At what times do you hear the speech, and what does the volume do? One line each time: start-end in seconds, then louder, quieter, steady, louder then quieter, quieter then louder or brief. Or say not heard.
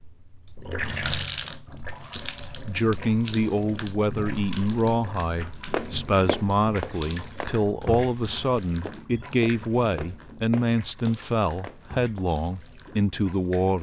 2.6-13.7 steady.